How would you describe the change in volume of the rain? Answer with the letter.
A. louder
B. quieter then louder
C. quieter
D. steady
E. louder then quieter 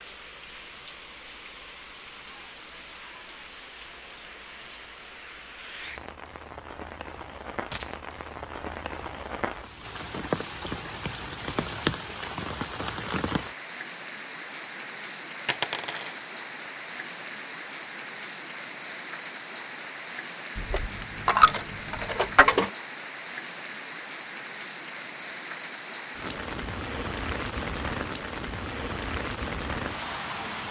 A.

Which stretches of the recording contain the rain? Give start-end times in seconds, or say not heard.
0.0-30.6.